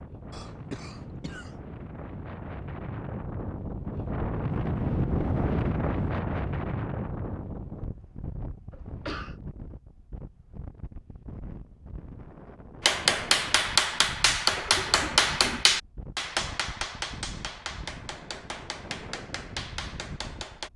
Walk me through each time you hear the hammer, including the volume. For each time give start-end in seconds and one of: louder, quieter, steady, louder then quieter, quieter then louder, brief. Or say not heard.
12.8-20.7 quieter.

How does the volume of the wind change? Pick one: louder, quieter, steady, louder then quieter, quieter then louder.
louder then quieter.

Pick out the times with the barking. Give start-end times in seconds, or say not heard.
not heard.